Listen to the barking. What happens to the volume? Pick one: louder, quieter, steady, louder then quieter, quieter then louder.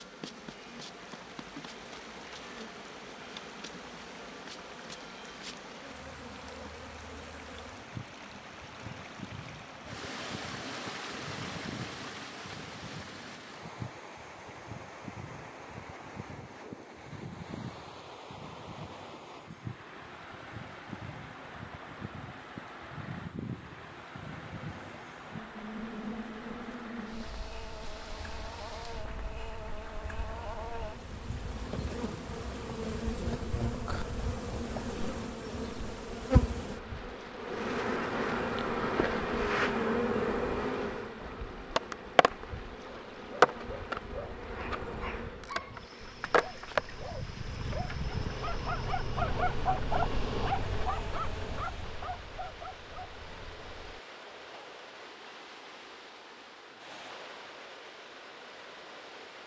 louder then quieter.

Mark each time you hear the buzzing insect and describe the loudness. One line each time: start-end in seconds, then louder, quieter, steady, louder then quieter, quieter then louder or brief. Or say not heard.
0.0-51.6 louder.